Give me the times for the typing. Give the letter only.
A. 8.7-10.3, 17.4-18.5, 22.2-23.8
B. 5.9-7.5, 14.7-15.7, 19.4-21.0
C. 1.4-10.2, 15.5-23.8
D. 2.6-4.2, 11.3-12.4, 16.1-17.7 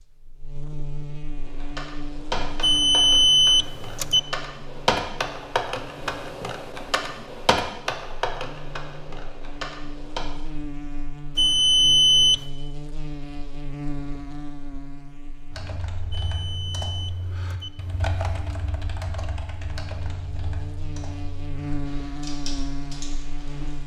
C.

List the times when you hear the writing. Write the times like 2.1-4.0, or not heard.
not heard.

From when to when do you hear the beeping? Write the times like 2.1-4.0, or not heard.
2.6-4.2, 11.3-12.4, 16.1-17.7.